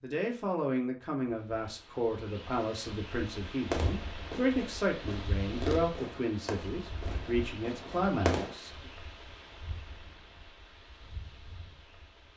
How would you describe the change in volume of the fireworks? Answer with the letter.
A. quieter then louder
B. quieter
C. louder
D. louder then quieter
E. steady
D.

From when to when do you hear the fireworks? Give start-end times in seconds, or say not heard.
3.7-8.6.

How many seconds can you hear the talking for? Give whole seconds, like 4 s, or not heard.
9 s.